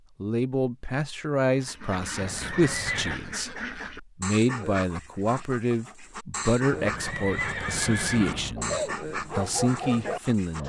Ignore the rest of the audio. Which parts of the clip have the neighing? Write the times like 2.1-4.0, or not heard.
2.2-3.2, 6.7-8.6.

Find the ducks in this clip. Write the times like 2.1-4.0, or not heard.
1.6-10.6.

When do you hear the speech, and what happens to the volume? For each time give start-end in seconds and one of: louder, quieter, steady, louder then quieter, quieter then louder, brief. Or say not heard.
0.2-10.6 steady.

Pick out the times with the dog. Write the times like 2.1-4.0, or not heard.
8.6-10.6.